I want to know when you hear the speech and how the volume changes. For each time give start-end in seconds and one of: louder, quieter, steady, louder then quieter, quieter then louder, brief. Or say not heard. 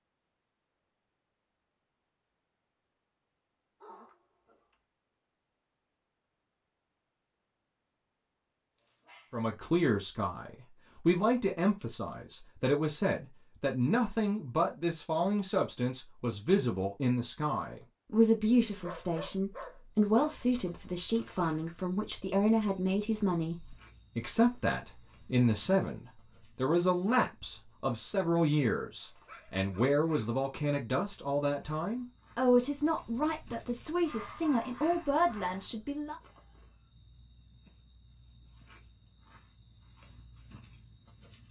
9.3-36.1 steady.